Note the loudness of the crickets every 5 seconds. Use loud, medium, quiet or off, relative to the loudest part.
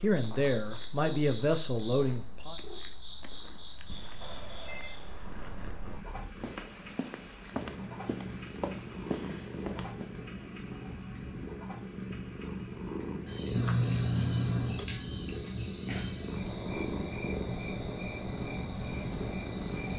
medium, loud, loud, medium.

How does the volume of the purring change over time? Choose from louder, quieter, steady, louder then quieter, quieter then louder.
louder.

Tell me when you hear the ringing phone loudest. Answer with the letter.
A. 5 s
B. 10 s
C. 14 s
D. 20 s
C.